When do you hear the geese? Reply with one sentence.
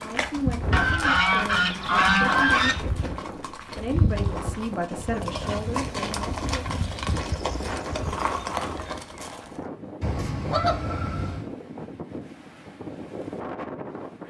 You can hear the geese from 0.7 to 2.8 s, from 5.1 to 7.0 s and from 10.0 to 11.5 s.